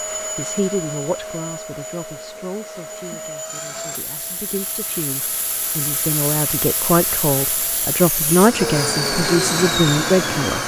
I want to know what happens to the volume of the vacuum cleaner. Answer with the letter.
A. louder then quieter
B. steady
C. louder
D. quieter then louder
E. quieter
C.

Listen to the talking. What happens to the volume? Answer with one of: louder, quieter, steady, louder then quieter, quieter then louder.
quieter then louder.